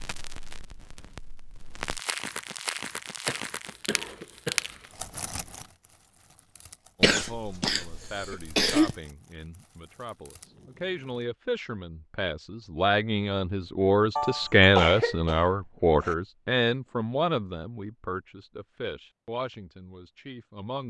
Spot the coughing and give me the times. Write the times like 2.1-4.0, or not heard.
3.2-4.7, 7.0-8.9, 14.2-16.1.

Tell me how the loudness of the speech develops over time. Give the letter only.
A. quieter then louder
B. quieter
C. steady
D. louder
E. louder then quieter
E.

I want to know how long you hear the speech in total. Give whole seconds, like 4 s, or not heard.
14 s.